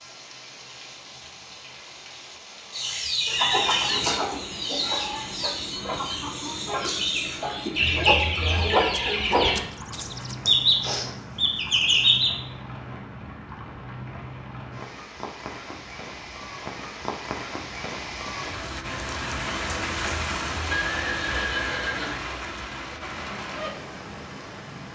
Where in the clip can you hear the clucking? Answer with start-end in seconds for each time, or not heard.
2.7-12.3.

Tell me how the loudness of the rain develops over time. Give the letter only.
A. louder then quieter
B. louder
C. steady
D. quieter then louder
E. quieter
B.